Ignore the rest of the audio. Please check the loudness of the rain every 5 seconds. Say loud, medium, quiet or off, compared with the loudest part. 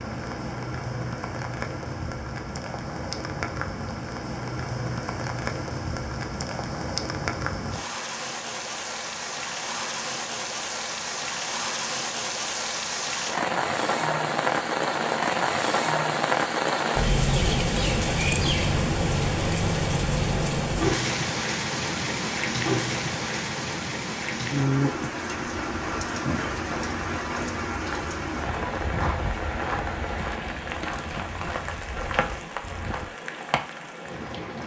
medium, medium, loud, loud, loud, medium, medium.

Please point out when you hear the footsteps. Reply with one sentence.
The footsteps can be heard from 25.6 to 33.0 s.